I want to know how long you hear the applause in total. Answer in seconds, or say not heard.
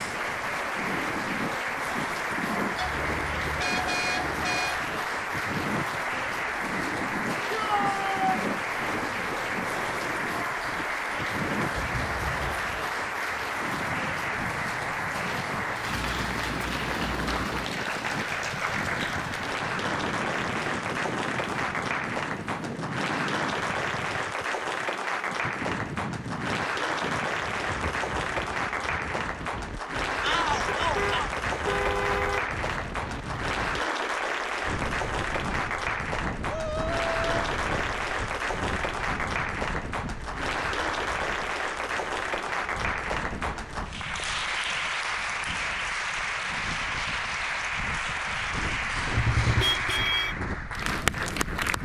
52 s.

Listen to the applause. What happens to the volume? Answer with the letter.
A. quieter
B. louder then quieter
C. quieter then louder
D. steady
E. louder
D.